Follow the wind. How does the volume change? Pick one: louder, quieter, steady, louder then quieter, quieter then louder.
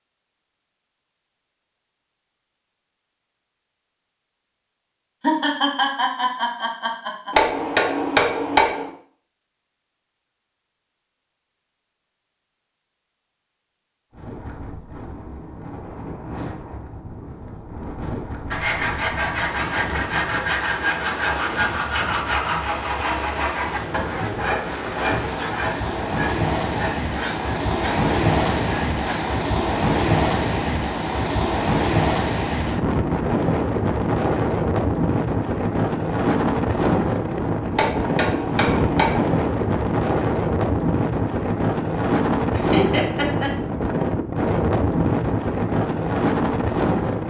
louder.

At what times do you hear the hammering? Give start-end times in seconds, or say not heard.
7.3-8.9, 37.8-39.4.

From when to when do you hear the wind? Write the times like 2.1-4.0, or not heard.
14.1-47.2.